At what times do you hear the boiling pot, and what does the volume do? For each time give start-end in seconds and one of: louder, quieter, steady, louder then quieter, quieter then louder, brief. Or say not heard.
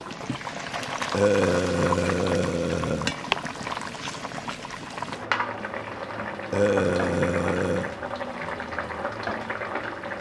0.0-10.1 steady.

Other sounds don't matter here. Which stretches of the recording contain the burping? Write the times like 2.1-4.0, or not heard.
1.1-3.1, 6.5-8.0.